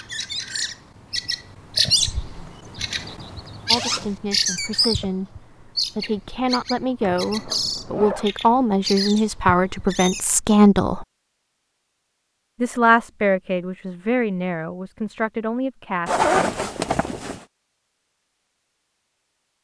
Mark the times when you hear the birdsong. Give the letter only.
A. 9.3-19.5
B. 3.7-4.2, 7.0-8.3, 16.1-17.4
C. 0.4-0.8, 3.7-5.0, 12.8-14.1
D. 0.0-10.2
D.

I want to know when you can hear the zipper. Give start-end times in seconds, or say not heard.
3.7-4.2, 7.0-8.3, 16.1-17.4.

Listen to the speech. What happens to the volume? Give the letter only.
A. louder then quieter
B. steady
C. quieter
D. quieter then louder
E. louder
A.